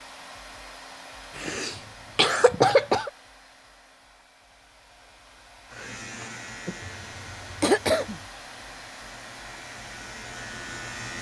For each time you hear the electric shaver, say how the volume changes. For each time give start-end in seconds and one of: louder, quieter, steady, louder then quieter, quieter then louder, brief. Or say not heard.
5.7-11.1 quieter then louder.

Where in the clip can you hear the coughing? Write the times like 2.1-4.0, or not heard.
1.4-3.1, 7.0-8.2.